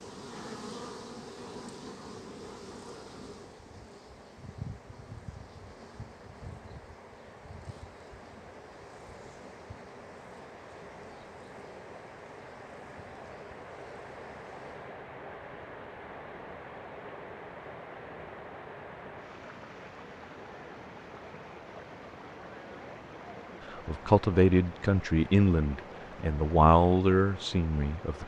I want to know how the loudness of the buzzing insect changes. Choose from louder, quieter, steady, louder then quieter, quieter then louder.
quieter.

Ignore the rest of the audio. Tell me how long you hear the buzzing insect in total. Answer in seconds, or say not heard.
15 s.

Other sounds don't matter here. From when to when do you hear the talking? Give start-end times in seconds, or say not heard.
23.9-28.2.